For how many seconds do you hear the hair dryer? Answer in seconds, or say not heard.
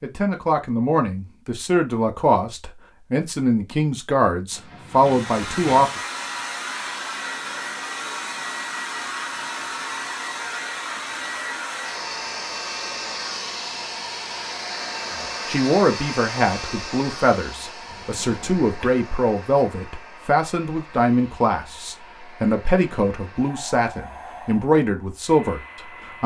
21 s.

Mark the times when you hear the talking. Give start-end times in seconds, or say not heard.
0.0-6.0, 15.2-26.2.